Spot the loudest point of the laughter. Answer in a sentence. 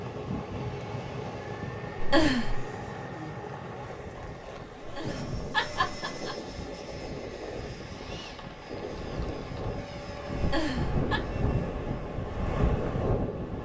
The loudest moment of the laughter is at 2 seconds.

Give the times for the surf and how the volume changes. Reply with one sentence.
The surf can be heard from 0.0 to 13.5 s, getting louder.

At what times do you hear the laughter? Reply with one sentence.
You can hear the laughter from 2.0 to 2.6 s, from 4.8 to 6.3 s and from 10.4 to 11.2 s.